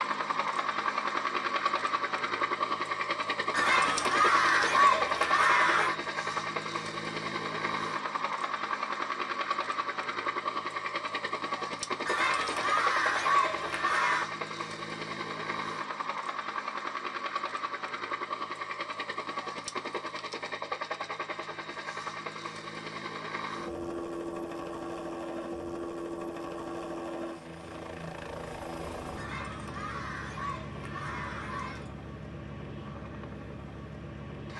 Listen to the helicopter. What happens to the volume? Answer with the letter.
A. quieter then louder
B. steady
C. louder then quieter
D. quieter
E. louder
D.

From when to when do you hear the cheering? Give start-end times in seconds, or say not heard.
3.5-6.0, 12.1-14.2, 29.1-31.9.